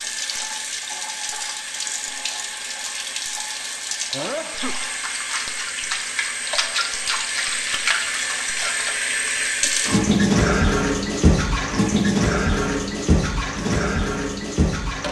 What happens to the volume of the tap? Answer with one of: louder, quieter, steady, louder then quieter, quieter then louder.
louder.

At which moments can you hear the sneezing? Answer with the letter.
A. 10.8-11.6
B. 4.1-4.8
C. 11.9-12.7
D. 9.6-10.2
B.